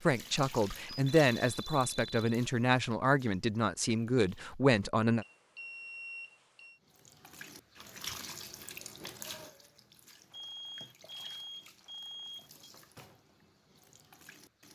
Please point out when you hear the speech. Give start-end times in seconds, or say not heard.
0.1-5.2.